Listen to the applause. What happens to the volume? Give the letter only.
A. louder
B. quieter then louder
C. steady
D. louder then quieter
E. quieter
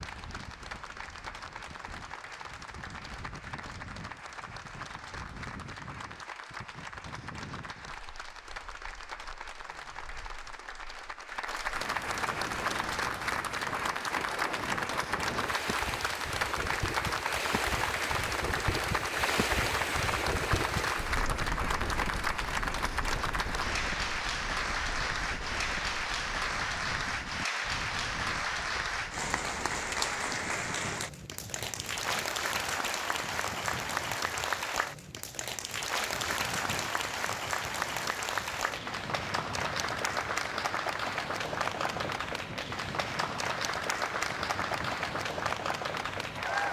A.